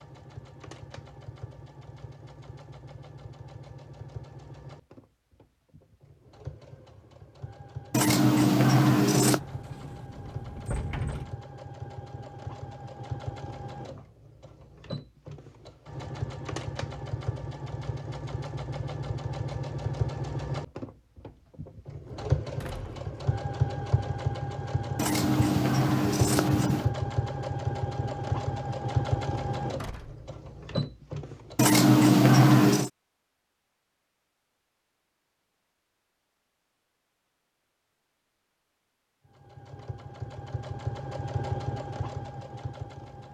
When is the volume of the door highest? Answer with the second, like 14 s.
11 s.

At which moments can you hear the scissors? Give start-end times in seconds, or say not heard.
7.9-9.4, 24.9-26.9, 31.6-32.9.